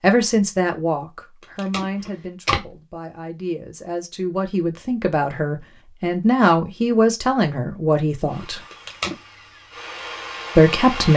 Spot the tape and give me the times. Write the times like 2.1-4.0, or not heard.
1.4-2.7, 8.7-9.2.